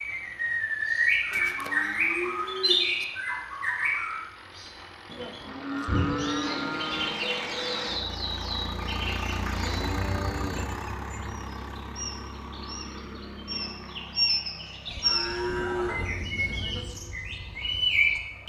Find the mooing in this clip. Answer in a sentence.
The mooing can be heard from 1.3 to 3.0 s, from 5.0 to 7.1 s, from 9.3 to 11.3 s and from 14.8 to 16.9 s.